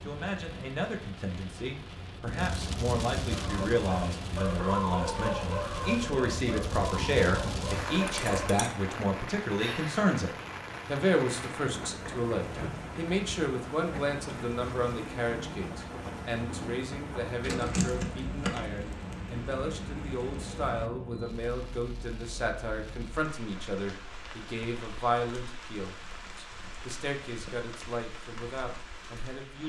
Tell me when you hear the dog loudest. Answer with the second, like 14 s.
5 s.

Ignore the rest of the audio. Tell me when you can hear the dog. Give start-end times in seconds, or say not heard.
3.3-8.5.